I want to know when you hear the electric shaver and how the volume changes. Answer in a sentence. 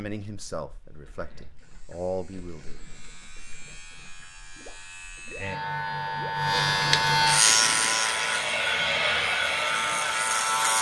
The electric shaver can be heard from 0.2 to 10.7 s, getting louder then quieter.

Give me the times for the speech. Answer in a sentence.
The speech can be heard from 0.0 to 2.8 s.